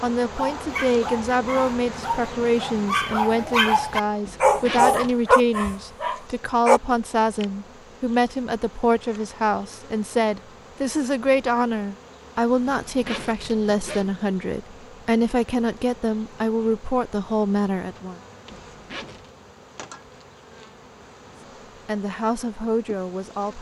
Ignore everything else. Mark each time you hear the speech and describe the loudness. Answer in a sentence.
The speech can be heard from 0.0 to 18.2 s, at a steady volume; and briefly from 21.9 to 23.5 s.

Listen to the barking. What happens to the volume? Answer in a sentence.
The volume of the barking goes up.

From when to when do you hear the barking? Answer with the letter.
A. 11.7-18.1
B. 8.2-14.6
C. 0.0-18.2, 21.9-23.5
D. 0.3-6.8
D.